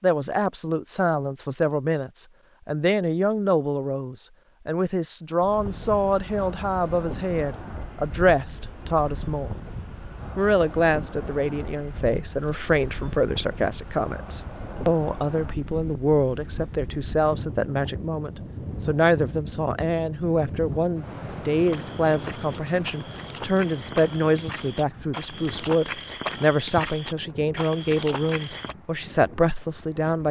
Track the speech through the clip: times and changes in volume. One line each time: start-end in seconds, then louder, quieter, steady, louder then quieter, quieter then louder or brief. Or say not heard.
0.0-9.6 steady
10.3-30.2 steady.